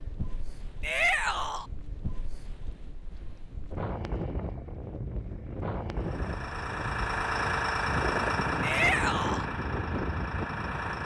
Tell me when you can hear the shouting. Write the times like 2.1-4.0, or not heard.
0.8-1.6, 8.6-9.4.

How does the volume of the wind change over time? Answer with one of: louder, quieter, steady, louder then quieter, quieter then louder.
louder.